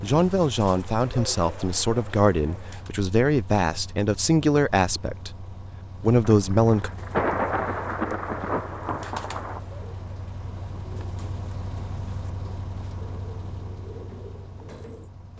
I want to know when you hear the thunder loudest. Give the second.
7 s.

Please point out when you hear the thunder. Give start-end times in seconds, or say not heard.
6.5-9.6.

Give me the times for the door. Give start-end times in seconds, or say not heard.
not heard.